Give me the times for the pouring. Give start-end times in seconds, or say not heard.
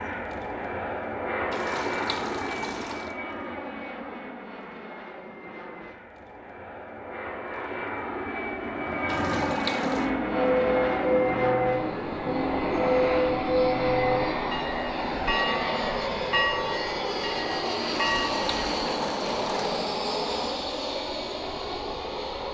1.5-3.1, 9.1-10.1, 17.9-19.8.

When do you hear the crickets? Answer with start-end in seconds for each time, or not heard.
not heard.